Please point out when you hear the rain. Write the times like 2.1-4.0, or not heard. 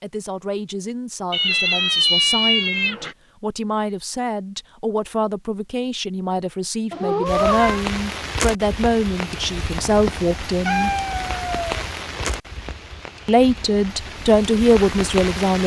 7.2-15.6.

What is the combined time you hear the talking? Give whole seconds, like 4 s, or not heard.
13 s.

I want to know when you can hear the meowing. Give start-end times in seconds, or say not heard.
1.3-3.1, 6.9-7.8, 10.7-12.3.